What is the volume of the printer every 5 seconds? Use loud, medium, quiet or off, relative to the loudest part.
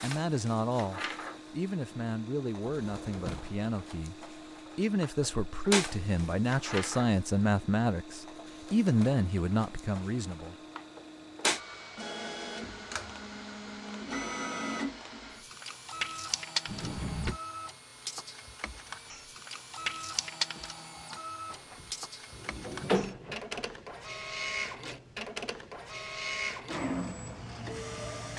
medium, loud, loud, loud, loud, loud.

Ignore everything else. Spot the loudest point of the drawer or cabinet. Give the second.
23 s.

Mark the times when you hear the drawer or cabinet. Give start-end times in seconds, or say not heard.
2.6-3.6, 16.6-17.4, 21.5-23.6.